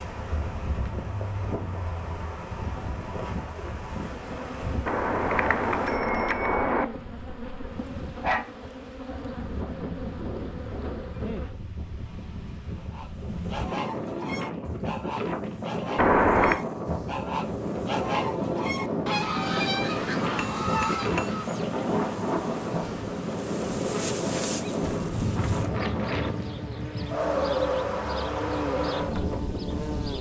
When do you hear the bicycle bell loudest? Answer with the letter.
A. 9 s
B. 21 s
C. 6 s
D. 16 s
D.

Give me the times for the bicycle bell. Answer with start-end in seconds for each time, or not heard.
4.8-6.8, 15.9-16.6, 20.4-21.4.